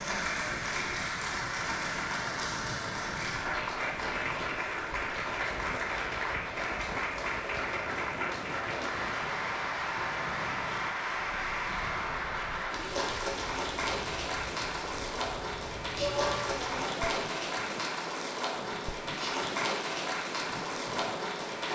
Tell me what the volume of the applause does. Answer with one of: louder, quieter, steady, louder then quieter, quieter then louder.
steady.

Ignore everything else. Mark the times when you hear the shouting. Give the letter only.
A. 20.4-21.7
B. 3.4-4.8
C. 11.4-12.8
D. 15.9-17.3
D.